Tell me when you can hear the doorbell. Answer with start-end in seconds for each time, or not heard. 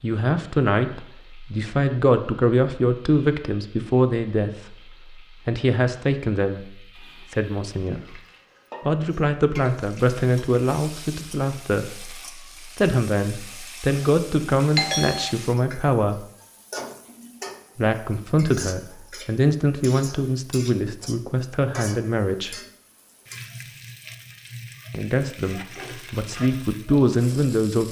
14.8-15.3.